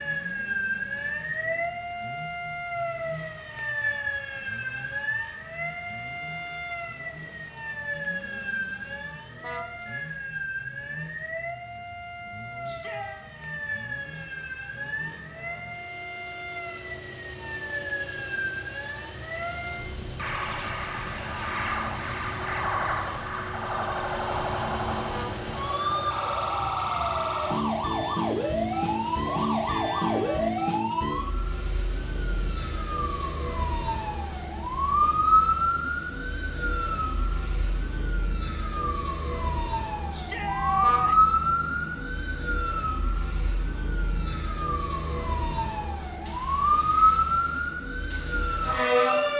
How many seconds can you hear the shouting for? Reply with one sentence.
You can hear the shouting for 3 seconds altogether.